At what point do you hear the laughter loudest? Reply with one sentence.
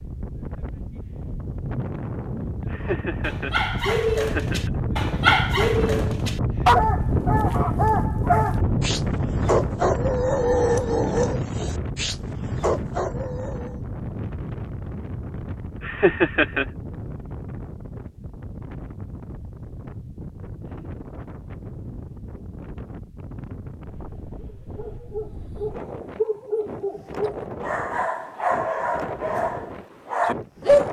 The volume of the laughter peaks at 16 seconds.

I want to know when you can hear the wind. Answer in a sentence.
You can hear the wind from 0.0 to 30.8 s.